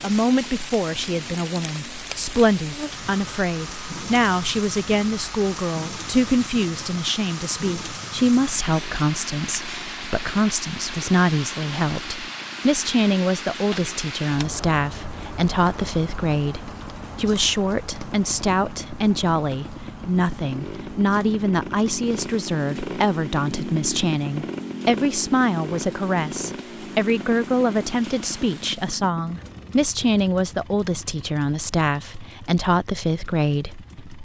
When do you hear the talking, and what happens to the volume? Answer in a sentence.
The talking can be heard from 0.0 to 34.1 s, at a steady volume.